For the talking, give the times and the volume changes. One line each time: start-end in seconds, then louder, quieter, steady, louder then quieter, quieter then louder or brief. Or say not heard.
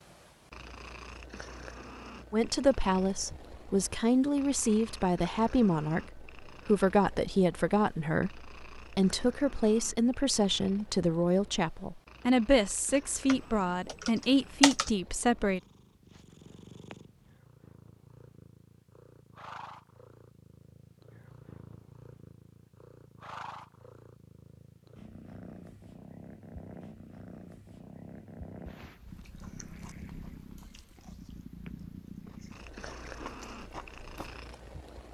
2.3-15.6 steady.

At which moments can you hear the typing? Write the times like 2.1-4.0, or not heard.
13.2-14.9.